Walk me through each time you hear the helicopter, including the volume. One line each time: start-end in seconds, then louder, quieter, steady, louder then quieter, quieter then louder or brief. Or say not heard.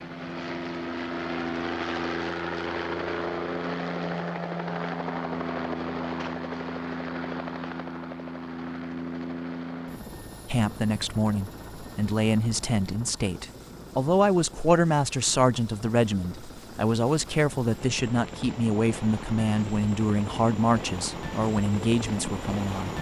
0.0-22.9 quieter then louder.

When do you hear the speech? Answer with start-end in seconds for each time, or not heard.
10.4-22.9.